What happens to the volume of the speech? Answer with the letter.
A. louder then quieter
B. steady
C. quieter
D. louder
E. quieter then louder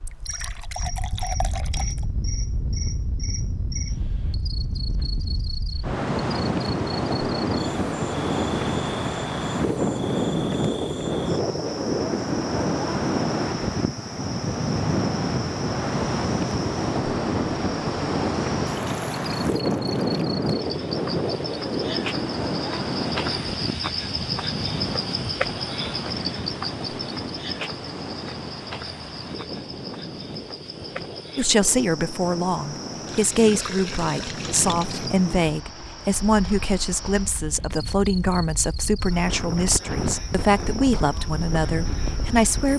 B.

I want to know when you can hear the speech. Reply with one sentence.
The speech can be heard from 31.4 to 42.7 s.